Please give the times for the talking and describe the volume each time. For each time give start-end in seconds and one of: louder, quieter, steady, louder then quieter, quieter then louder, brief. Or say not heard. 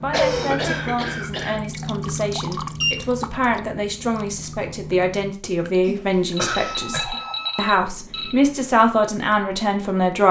0.0-10.2 louder.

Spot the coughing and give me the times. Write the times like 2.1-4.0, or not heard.
0.1-1.6, 5.8-7.2.